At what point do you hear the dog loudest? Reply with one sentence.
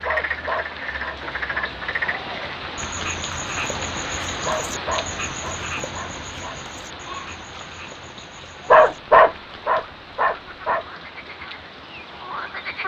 The volume of the dog peaks at 9 seconds.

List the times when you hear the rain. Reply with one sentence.
The rain can be heard from 0.0 to 12.8 s.